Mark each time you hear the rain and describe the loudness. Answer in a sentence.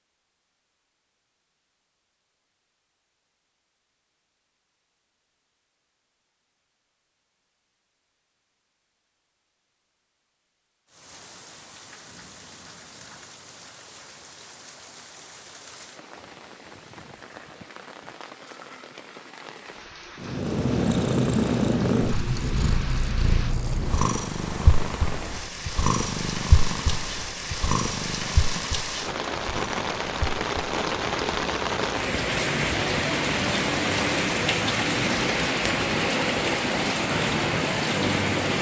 The rain can be heard from 10.8 to 38.5 s, getting louder.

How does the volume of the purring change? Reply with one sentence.
The volume of the purring goes down.